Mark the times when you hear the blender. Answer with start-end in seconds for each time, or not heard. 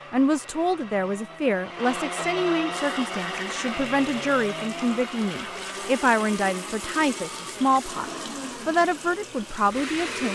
0.0-10.3.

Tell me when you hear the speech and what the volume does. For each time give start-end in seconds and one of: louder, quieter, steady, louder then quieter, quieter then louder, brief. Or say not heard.
0.1-10.3 steady.